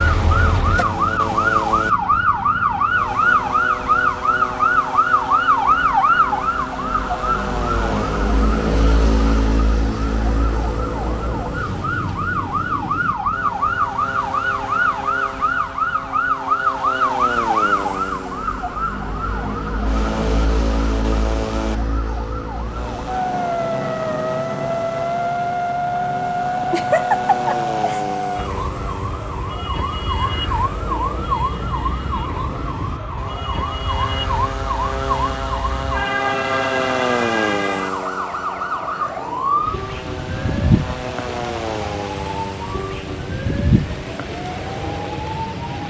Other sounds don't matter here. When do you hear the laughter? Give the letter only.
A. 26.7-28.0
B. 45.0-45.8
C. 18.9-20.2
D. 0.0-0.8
A.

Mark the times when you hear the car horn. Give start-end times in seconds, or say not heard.
0.0-0.8.